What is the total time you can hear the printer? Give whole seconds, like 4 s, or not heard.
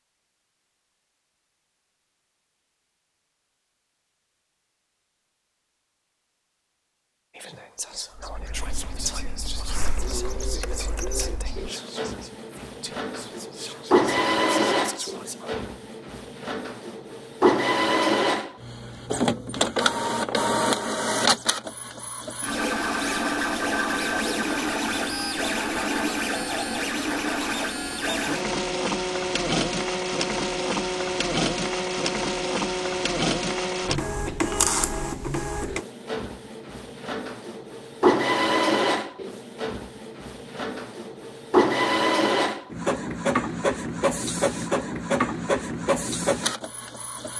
39 s.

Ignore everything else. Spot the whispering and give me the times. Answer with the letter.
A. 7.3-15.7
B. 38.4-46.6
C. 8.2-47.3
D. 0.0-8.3
A.